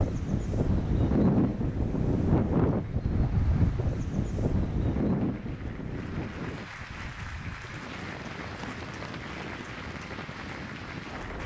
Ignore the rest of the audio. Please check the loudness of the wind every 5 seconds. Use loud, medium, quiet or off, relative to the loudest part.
loud, medium, quiet.